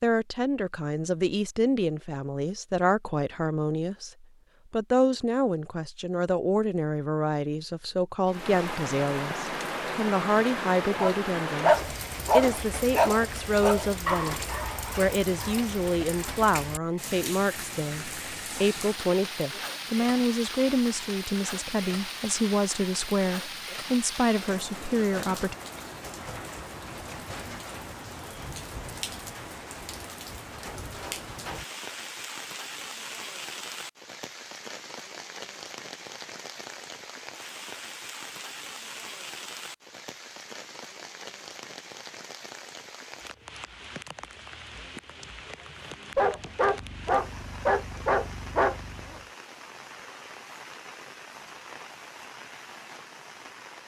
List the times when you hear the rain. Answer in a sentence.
The rain can be heard from 8.2 to 53.8 s.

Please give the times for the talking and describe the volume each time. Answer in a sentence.
You can hear the talking from 0.0 to 25.6 s, at a steady volume.